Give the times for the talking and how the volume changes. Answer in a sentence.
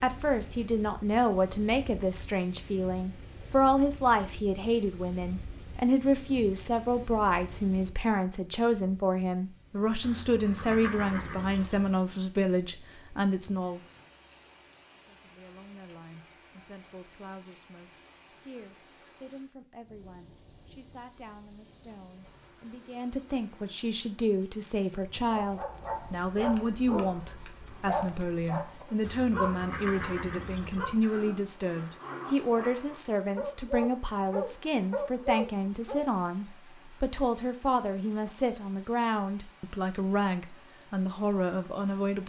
The talking can be heard from 0.0 to 13.8 s, at a steady volume; and from 14.9 to 42.2 s, getting louder.